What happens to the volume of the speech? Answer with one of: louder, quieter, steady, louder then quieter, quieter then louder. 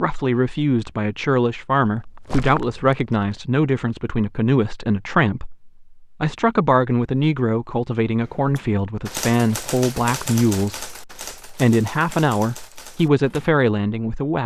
steady.